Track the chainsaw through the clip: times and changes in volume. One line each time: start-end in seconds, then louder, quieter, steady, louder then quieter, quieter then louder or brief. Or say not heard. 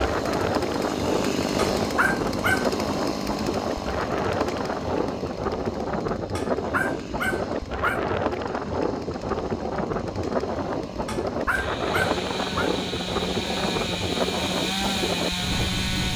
0.0-16.1 quieter then louder.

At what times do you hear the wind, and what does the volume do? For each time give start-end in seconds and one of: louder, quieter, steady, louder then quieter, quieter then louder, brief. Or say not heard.
0.0-16.1 steady.